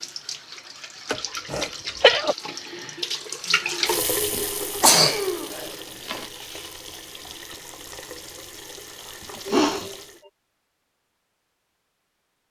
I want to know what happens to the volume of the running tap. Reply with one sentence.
The loudness of the running tap goes up, then down.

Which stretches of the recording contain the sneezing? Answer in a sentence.
The sneezing can be heard from 1.1 to 2.4 s, from 4.3 to 6.2 s and from 9.3 to 9.9 s.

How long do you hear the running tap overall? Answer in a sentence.
The running tap can be heard for 10 seconds in total.